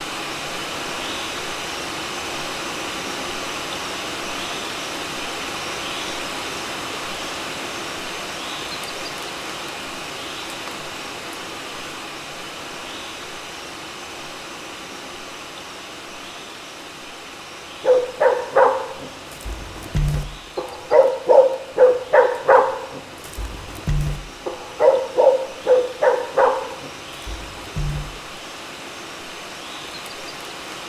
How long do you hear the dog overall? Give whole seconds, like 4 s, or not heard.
10 s.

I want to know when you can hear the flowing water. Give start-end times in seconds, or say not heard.
0.0-30.8.